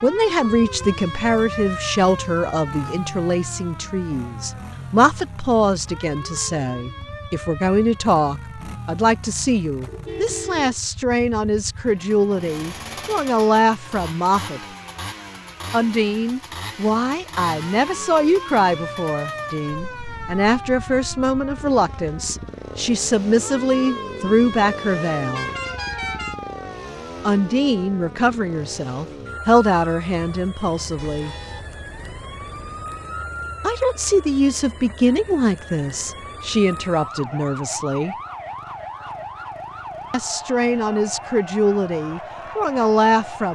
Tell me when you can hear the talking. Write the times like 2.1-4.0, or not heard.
0.0-14.6, 15.7-25.5, 27.2-31.4, 33.6-38.1, 40.1-43.5.